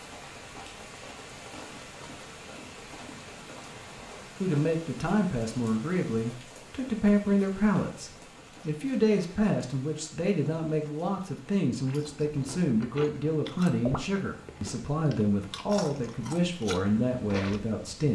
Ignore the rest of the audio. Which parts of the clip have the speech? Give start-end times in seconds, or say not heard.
4.4-18.0.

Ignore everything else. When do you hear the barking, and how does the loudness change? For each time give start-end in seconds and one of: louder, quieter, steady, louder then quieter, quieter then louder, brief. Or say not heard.
not heard.